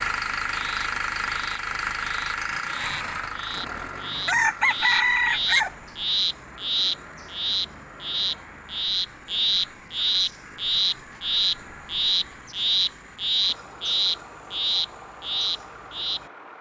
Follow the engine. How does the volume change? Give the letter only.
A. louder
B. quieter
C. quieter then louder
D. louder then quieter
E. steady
B.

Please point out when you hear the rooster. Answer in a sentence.
The rooster can be heard from 4.2 to 5.7 s.